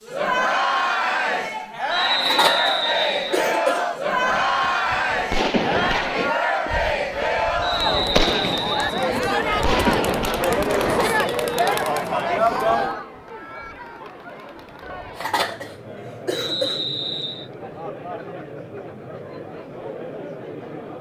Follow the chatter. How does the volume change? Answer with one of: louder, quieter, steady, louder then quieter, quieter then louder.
quieter.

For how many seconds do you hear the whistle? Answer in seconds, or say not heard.
4 s.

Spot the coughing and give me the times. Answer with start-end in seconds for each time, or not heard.
2.2-3.9, 10.8-11.2, 15.2-16.8.